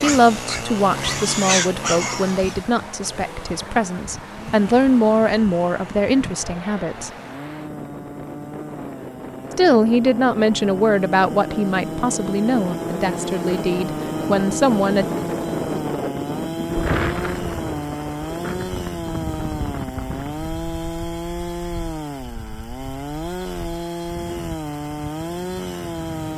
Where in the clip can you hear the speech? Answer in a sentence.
The speech can be heard from 0.0 to 7.1 s and from 9.6 to 15.1 s.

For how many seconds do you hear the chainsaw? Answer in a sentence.
You can hear the chainsaw for 26 seconds altogether.